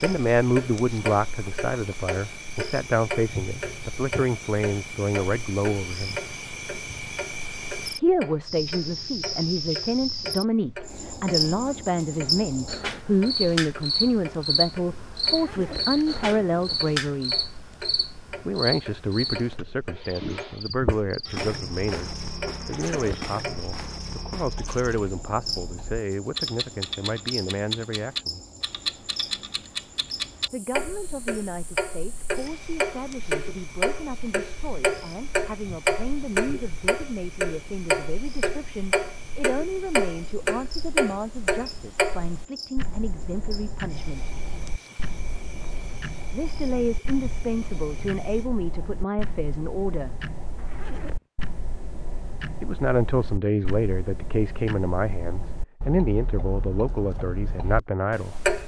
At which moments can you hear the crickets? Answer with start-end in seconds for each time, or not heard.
0.0-48.5.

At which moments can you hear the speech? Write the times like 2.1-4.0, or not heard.
0.0-6.2, 8.0-17.4, 18.4-28.4, 30.5-44.3, 46.3-50.3, 52.6-58.4.